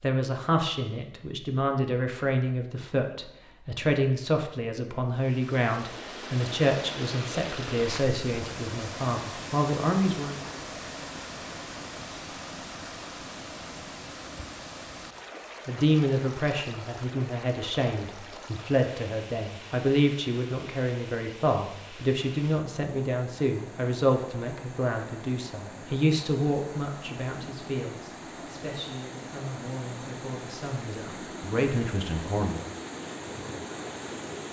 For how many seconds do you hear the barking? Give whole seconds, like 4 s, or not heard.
not heard.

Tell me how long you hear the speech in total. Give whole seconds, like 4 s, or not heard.
27 s.